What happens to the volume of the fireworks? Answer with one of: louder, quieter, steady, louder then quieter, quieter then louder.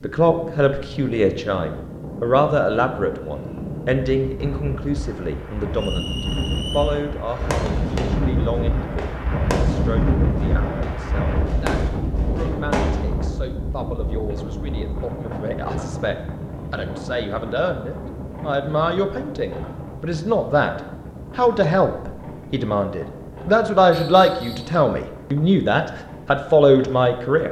quieter then louder.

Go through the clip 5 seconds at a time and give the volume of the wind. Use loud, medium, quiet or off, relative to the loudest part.
medium, loud, loud, medium, medium, quiet.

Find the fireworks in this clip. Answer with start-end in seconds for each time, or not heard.
7.3-13.1.